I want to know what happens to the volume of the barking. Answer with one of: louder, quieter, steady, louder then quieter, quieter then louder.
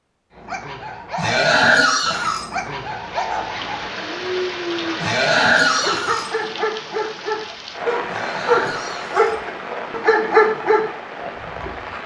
louder.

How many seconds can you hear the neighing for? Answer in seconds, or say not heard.
4 s.